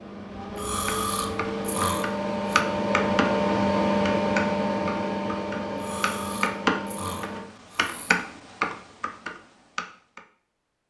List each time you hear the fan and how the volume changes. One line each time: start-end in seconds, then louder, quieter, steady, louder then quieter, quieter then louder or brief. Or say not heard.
0.0-7.5 louder then quieter.